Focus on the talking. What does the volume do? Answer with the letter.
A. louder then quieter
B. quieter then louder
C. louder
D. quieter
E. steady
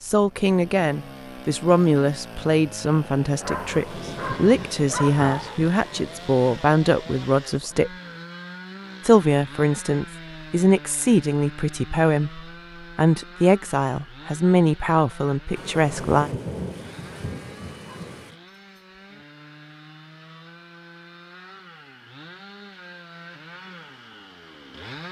E.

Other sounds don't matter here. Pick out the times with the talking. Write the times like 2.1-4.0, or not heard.
0.0-7.9, 9.1-16.3.